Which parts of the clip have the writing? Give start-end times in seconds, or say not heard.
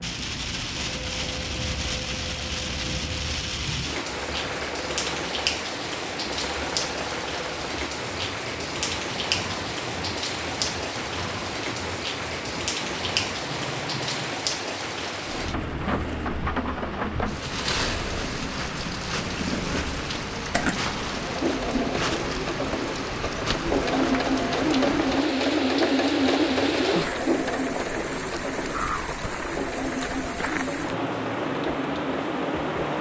not heard.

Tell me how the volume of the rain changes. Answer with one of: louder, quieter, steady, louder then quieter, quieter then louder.
steady.